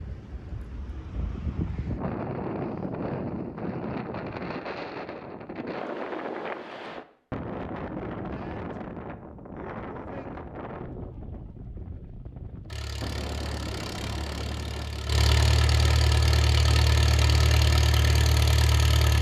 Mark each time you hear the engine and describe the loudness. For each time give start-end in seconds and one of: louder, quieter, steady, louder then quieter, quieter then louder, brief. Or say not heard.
12.7-19.1 louder.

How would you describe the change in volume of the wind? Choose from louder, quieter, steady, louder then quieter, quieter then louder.
quieter.